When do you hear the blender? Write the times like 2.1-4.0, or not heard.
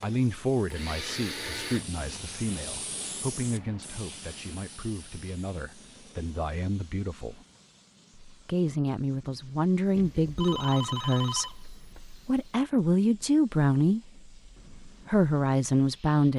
0.0-1.9.